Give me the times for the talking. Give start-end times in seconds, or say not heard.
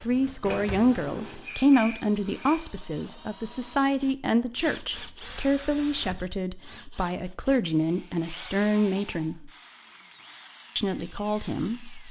0.0-9.5, 10.8-12.0.